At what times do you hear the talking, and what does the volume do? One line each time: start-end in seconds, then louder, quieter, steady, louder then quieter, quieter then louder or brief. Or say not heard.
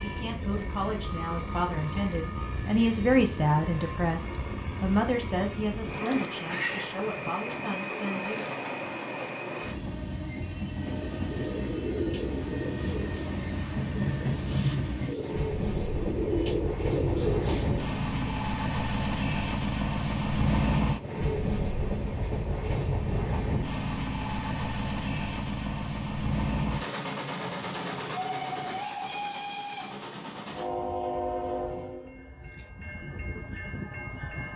0.0-8.5 louder then quieter.